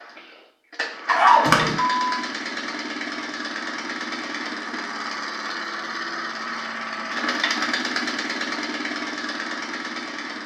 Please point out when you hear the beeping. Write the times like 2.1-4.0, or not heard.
1.1-2.1.